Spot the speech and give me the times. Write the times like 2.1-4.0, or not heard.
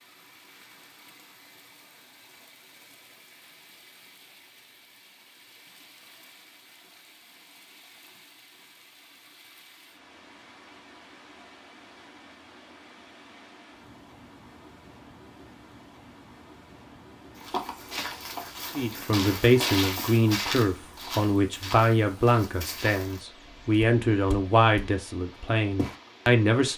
18.8-26.7.